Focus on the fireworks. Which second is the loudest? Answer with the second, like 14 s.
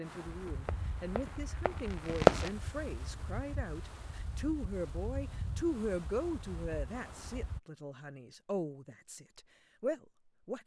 2 s.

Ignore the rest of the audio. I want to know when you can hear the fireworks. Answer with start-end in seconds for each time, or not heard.
0.2-2.5.